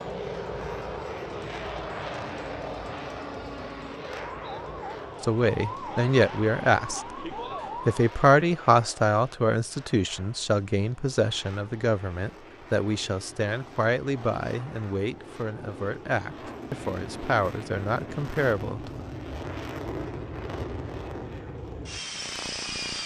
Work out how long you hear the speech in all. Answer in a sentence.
You can hear the speech for 13 seconds altogether.